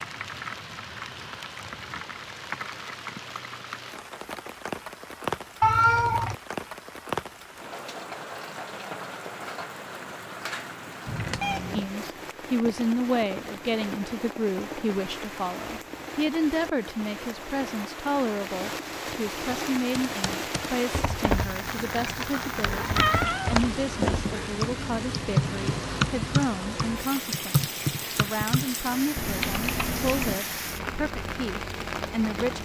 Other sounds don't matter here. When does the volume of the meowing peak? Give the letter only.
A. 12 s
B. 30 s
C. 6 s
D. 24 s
C.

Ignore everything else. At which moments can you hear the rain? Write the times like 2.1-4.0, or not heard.
0.0-32.6.